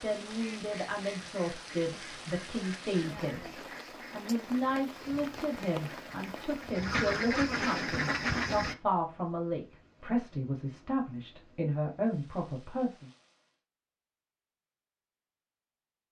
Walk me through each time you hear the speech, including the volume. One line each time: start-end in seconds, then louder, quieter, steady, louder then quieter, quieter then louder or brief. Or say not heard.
0.0-13.1 steady.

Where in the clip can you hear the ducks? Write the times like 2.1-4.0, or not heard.
0.3-8.8.